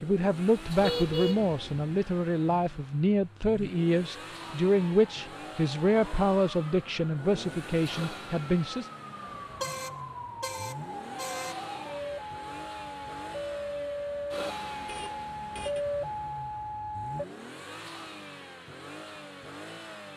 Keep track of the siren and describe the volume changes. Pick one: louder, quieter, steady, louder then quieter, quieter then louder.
louder.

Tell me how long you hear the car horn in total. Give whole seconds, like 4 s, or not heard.
4 s.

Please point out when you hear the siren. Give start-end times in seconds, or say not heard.
4.3-17.2.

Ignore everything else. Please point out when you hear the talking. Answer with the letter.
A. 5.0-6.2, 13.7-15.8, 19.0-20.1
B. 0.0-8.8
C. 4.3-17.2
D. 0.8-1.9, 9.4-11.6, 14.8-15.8
B.